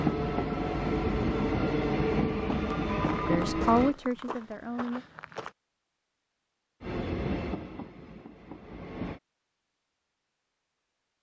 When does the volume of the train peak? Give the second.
2 s.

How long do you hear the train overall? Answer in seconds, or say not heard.
6 s.